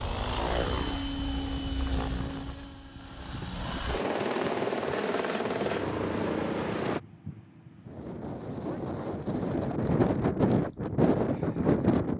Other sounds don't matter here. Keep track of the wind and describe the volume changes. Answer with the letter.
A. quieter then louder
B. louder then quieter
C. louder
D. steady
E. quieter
C.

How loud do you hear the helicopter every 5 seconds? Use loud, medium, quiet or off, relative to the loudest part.
loud, loud, off.